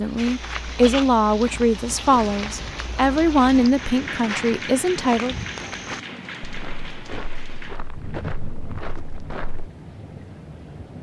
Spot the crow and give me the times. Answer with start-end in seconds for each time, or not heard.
not heard.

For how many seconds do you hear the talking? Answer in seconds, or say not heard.
5 s.